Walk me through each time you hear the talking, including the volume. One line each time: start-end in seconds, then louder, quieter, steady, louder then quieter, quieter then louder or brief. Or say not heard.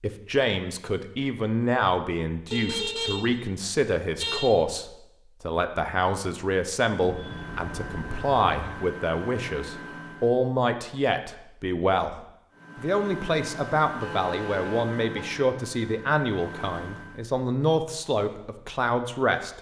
0.0-12.2 steady
12.8-19.5 steady.